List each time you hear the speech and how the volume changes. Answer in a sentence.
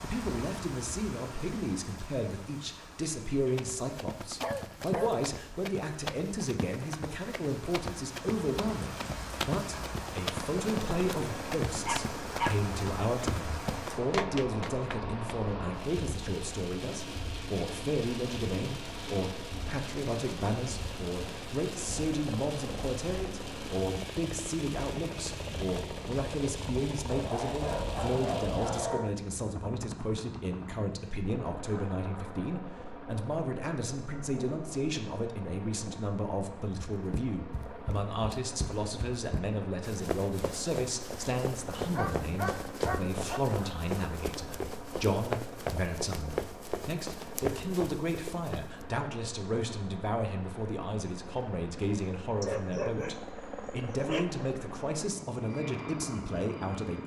You can hear the speech from 0.0 to 57.0 s, at a steady volume.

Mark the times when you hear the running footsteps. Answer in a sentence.
The running footsteps can be heard from 3.5 to 15.2 s and from 37.0 to 48.9 s.